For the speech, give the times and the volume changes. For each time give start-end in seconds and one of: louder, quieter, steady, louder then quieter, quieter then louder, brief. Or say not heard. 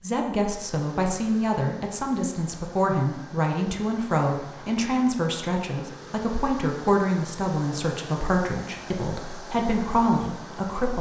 0.0-10.9 steady.